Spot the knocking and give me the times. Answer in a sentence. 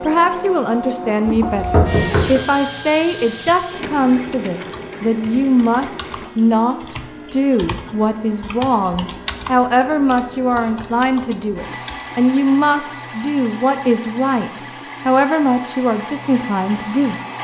The knocking can be heard from 1.3 to 2.4 s.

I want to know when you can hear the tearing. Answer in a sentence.
You can't hear the tearing here.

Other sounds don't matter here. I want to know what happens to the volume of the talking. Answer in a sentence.
The loudness of the talking stays about the same.